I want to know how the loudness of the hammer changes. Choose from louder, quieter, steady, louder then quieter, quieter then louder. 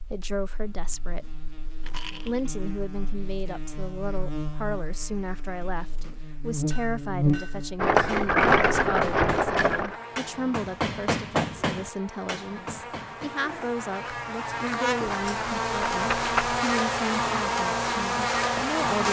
louder then quieter.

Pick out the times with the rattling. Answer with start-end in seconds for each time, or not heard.
1.9-2.5, 7.8-9.9, 15.2-16.6.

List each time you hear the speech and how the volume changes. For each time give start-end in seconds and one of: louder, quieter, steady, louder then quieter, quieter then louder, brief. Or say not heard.
0.0-1.4 brief
2.2-19.0 steady.